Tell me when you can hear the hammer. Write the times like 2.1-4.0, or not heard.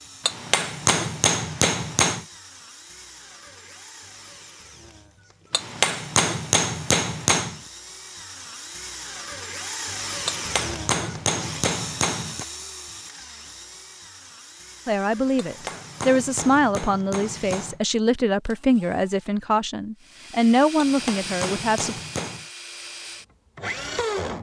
0.2-2.2, 5.5-7.6, 10.2-12.4, 15.3-17.8, 20.8-22.4.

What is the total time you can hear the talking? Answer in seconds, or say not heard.
7 s.